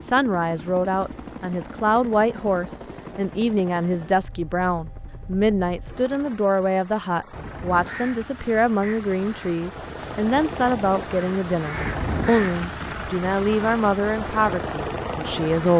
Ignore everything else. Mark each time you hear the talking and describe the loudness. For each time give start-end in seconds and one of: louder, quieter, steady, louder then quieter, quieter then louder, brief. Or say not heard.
0.0-15.7 steady.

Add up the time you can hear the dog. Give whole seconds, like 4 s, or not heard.
not heard.